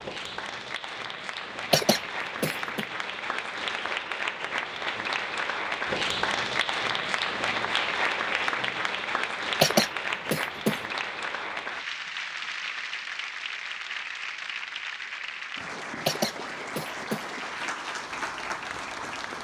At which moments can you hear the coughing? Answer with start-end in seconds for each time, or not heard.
1.7-2.9, 9.6-10.8, 16.1-17.2.